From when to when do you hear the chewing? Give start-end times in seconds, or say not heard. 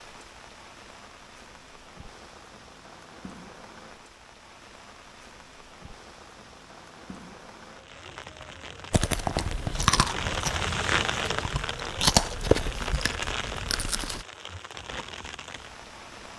8.9-14.2.